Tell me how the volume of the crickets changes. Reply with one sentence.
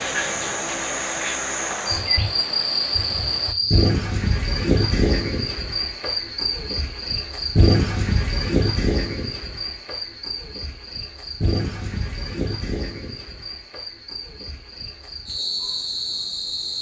The volume of the crickets goes down.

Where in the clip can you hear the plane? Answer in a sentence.
The plane can be heard from 0.0 to 3.5 s.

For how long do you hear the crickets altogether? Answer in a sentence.
The crickets can be heard for 17 seconds in total.